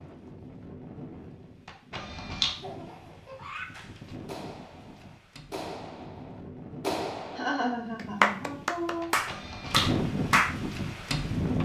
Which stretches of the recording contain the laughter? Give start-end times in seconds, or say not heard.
2.6-3.7, 7.3-9.1.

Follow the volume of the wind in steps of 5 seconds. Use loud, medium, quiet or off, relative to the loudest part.
quiet, medium, loud.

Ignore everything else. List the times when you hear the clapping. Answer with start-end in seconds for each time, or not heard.
3.7-10.6.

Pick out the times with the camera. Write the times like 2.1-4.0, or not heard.
1.6-2.5, 9.0-9.8.